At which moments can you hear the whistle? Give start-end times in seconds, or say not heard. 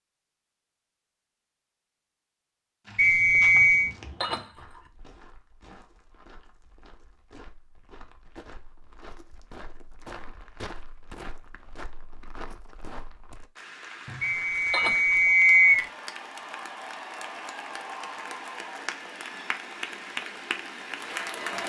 3.0-3.9, 14.2-15.9.